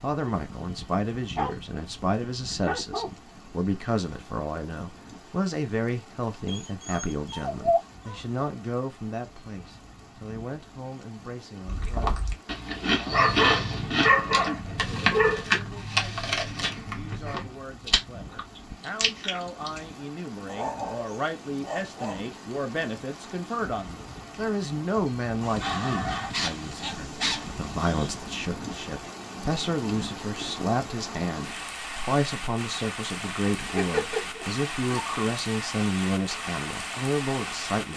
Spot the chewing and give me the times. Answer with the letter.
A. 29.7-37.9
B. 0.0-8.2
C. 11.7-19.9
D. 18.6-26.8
C.